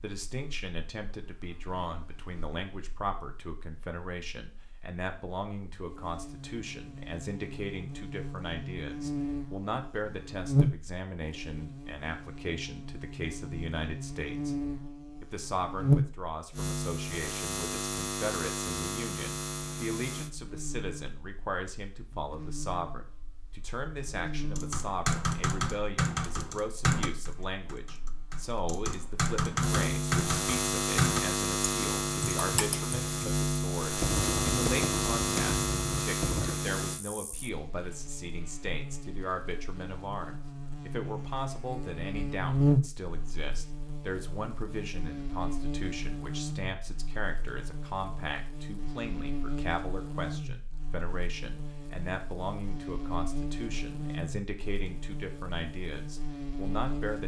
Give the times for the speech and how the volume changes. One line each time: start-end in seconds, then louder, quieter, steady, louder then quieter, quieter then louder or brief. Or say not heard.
0.0-14.6 steady
15.2-57.2 steady.